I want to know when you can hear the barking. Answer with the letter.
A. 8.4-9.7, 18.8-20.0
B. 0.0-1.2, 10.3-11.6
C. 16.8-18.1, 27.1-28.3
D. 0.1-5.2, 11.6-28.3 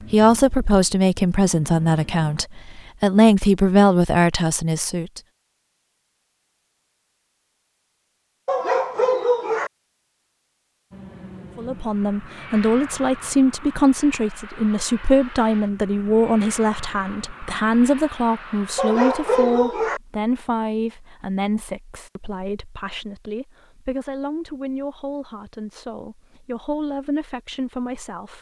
A.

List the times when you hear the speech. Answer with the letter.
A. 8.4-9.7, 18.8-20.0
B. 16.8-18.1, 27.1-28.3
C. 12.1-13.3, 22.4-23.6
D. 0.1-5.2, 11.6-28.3
D.